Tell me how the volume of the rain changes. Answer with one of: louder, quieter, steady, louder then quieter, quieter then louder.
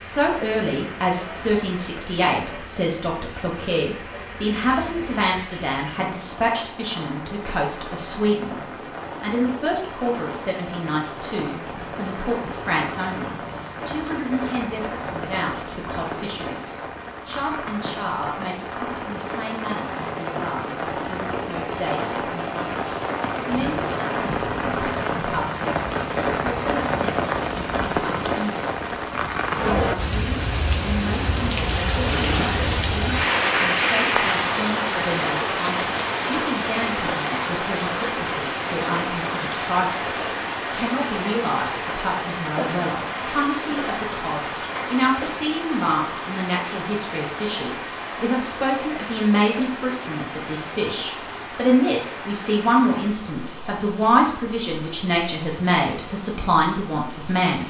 louder then quieter.